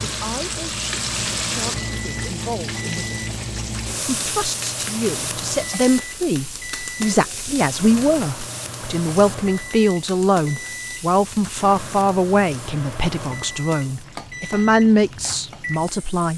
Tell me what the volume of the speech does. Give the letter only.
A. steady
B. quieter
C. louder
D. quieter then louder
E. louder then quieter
C.